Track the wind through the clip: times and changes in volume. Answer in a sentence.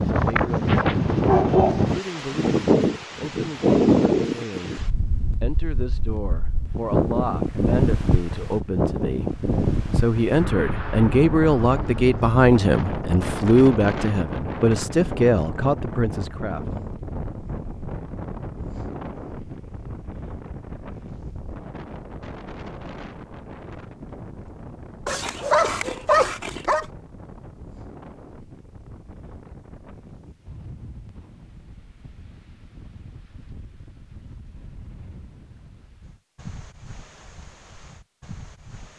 The wind can be heard from 0.0 to 38.9 s, getting quieter.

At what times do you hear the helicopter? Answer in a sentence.
The helicopter can't be heard in this clip.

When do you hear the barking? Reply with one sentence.
You can hear the barking from 0.7 to 1.9 s and from 25.1 to 26.9 s.